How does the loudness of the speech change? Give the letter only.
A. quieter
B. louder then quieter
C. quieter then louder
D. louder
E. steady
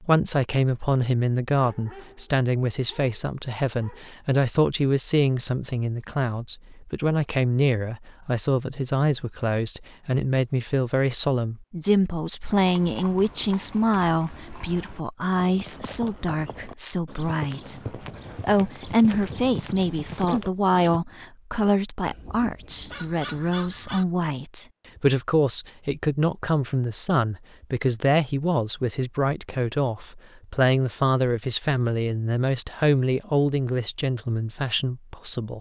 E.